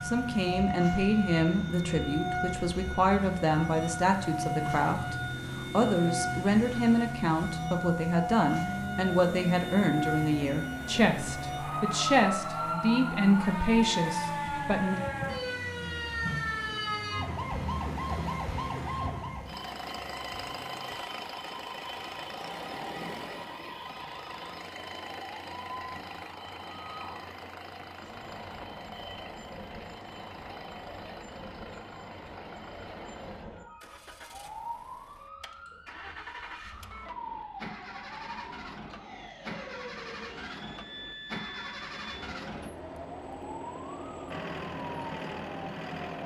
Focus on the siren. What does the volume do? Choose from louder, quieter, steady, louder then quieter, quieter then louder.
quieter.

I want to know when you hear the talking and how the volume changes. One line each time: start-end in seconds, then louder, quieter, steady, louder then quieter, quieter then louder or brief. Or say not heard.
0.0-14.9 steady.